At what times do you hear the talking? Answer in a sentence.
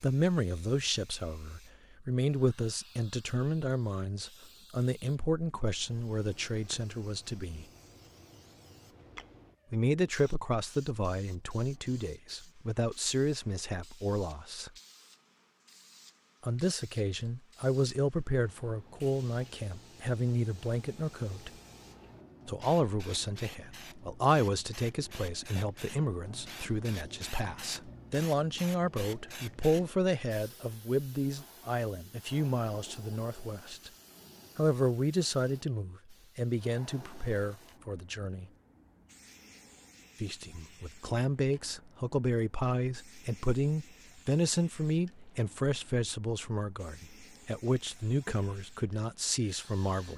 You can hear the talking from 0.0 to 7.7 s, from 9.7 to 14.7 s, from 16.4 to 21.5 s, from 22.4 to 33.9 s, from 34.5 to 38.5 s and from 40.2 to 50.1 s.